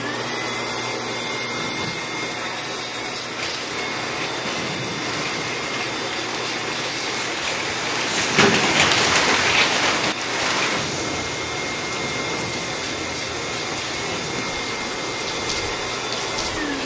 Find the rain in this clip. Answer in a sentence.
You can hear the rain from 3.4 to 16.8 s.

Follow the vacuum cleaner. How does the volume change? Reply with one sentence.
The volume of the vacuum cleaner stays about the same.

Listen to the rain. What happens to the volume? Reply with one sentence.
The loudness of the rain goes up, then down.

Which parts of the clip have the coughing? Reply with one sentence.
You can't hear the coughing here.